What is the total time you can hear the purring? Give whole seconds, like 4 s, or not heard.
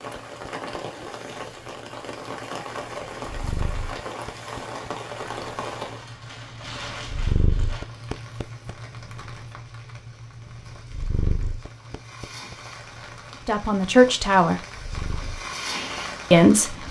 17 s.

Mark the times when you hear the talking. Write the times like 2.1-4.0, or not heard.
13.4-14.6, 16.3-16.8.